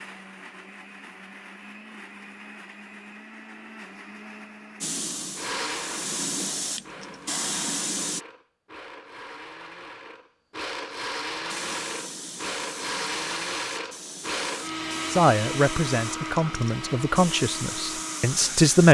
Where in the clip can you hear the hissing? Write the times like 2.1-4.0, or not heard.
4.8-8.2, 11.3-18.8.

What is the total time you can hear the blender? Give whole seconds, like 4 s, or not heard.
19 s.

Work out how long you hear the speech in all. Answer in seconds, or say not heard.
4 s.